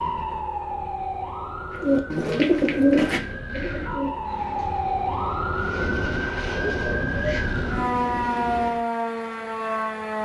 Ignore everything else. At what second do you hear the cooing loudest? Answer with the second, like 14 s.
3 s.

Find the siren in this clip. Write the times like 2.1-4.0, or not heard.
0.0-10.2.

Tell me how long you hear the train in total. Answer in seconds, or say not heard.
3 s.